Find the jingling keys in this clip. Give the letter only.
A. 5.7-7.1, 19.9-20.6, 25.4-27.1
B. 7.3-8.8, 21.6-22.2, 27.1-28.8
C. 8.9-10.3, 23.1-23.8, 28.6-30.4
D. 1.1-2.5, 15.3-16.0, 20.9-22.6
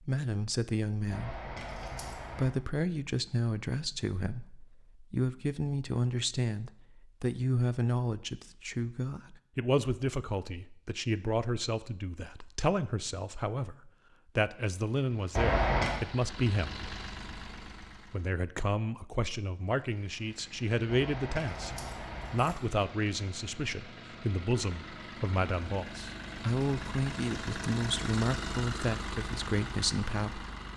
D.